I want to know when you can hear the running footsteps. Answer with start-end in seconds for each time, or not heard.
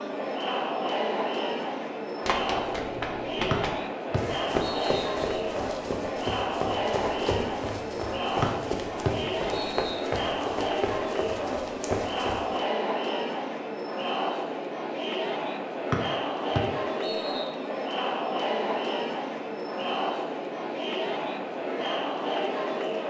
2.2-12.6.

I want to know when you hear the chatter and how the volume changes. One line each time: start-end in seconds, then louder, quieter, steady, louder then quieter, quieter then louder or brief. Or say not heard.
0.0-23.0 steady.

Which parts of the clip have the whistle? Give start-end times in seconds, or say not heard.
3.5-5.4, 8.4-10.1, 15.9-17.5.